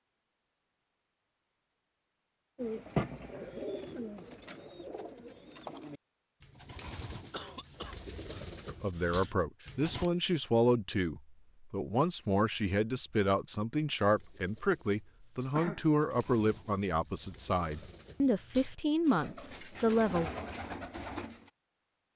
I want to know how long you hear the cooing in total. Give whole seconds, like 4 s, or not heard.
15 s.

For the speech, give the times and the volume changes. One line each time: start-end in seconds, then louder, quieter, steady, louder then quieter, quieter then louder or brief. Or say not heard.
8.7-20.3 steady.